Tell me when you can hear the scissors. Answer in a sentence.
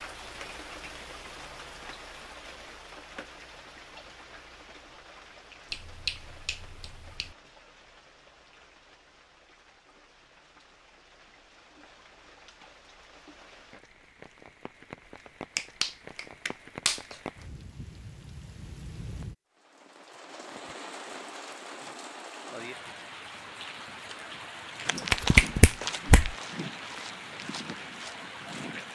You can't hear the scissors here.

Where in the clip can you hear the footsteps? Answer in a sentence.
The footsteps can be heard from 24.9 to 28.9 s.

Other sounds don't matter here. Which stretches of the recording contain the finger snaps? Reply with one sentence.
You can hear the finger snaps from 5.7 to 7.3 s, from 15.6 to 17.1 s and from 24.9 to 26.4 s.